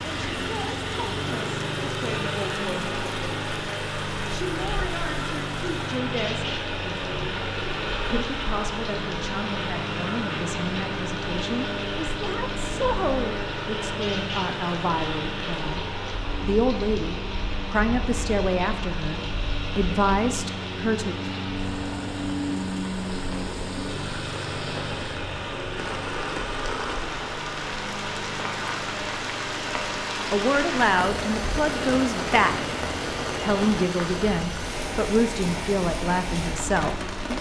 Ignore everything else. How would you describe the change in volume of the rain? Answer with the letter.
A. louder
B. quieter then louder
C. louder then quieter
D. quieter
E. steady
A.